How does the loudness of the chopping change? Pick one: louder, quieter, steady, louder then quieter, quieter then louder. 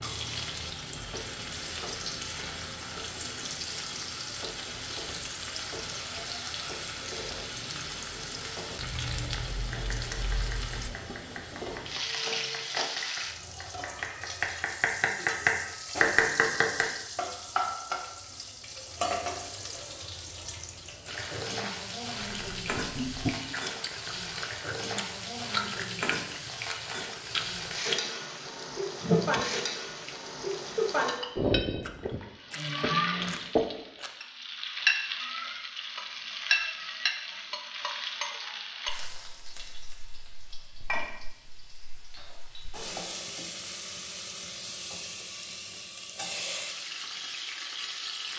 louder.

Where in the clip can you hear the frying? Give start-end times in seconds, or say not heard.
0.0-48.3.